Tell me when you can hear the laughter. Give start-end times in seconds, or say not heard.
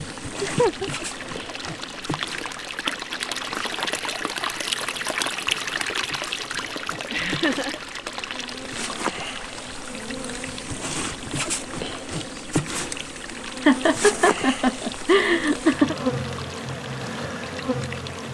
0.3-0.9, 7.1-7.8, 13.7-15.9.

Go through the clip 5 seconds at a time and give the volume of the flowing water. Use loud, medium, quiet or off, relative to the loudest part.
loud, loud, medium, medium.